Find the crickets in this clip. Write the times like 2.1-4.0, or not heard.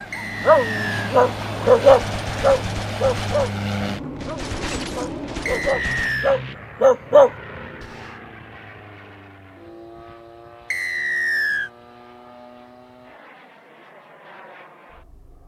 not heard.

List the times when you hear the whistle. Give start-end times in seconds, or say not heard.
0.1-1.1, 5.5-6.4, 10.7-11.7.